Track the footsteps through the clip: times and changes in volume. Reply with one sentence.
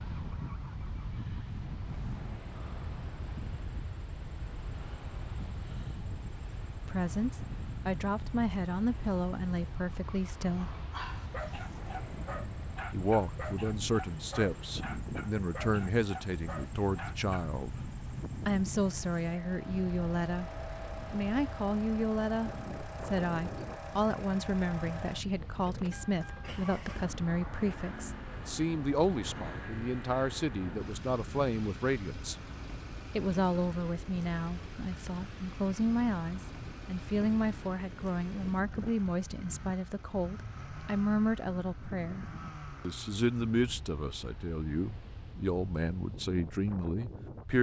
You can't hear the footsteps here.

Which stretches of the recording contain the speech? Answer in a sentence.
You can hear the speech from 6.8 to 10.8 s, from 12.9 to 17.8 s, from 18.4 to 20.5 s, from 21.1 to 32.4 s and from 33.1 to 47.5 s.